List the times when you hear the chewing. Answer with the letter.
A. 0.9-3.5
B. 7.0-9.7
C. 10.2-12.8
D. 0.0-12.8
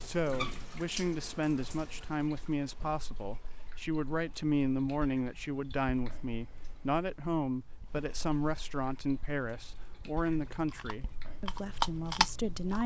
C.